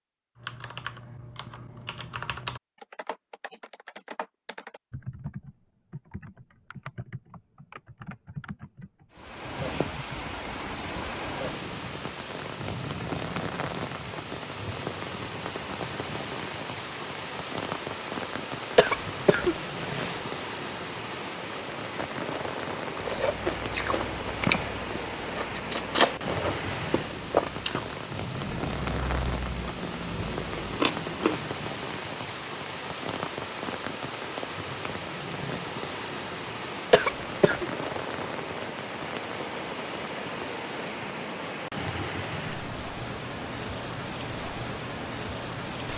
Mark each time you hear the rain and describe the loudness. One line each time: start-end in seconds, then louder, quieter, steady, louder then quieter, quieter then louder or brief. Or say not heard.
9.1-45.9 steady.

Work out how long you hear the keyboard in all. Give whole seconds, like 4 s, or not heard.
10 s.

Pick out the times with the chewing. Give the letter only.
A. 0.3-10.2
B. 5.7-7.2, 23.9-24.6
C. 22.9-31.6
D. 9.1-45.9
C.